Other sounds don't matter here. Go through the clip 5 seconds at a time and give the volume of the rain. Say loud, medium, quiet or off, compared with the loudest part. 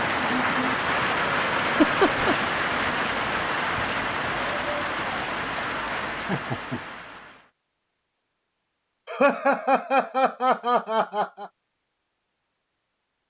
loud, medium, off.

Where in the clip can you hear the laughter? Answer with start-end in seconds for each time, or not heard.
1.6-2.4, 6.2-6.8, 9.1-11.5.